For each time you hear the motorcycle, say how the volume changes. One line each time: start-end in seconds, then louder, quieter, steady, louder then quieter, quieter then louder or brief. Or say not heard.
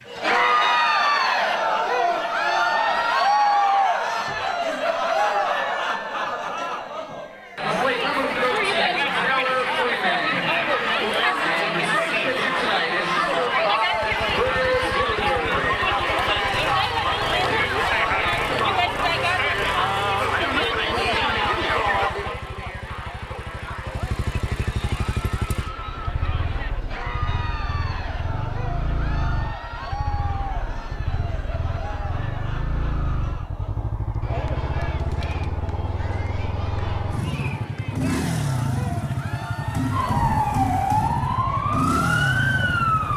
13.8-43.1 louder.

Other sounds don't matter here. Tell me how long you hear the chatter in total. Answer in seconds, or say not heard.
43 s.